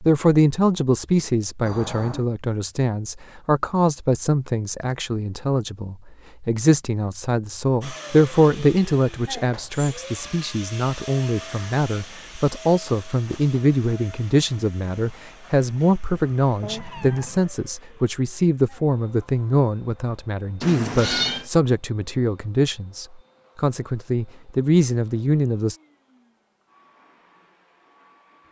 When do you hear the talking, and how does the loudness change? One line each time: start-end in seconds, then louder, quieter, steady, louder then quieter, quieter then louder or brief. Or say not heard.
0.0-25.8 steady.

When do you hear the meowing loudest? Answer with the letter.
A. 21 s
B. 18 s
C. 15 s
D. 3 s
A.